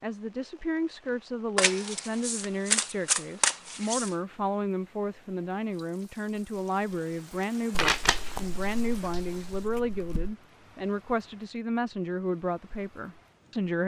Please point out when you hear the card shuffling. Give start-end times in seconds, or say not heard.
1.6-4.2, 7.7-10.3.